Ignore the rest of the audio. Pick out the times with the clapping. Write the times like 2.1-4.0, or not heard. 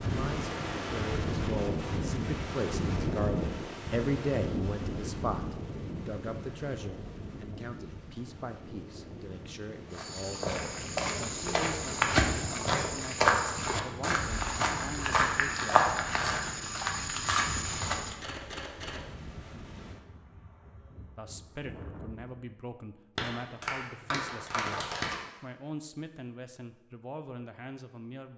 23.1-25.1.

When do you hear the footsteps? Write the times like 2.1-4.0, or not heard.
9.9-18.1.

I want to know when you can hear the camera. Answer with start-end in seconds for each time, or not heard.
18.2-19.2.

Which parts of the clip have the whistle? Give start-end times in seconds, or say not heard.
not heard.